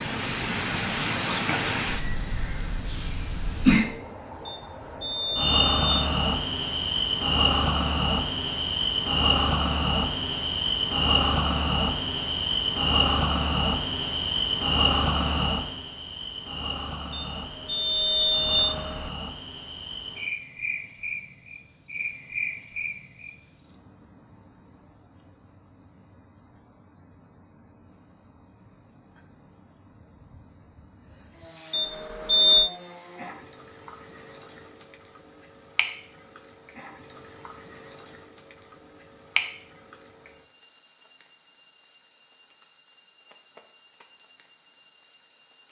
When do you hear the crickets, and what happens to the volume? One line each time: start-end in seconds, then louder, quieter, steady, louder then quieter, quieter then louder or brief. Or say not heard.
0.0-45.6 quieter.